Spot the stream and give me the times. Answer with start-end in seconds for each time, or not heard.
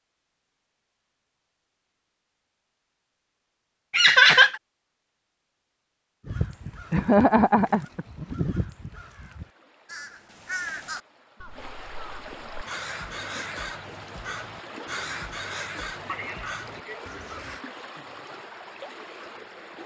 6.3-19.8.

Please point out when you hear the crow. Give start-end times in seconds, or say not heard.
6.2-17.6.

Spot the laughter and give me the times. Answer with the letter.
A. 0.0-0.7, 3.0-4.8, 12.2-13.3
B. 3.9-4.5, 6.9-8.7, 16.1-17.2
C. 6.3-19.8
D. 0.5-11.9
B.